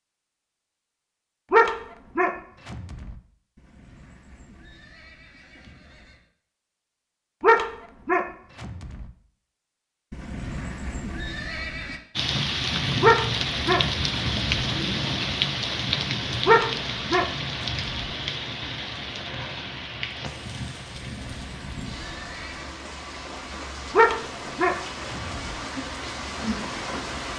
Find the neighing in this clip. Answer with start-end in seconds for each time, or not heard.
3.5-6.3, 10.1-12.0, 20.9-22.7.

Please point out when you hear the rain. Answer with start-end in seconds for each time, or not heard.
12.2-27.3.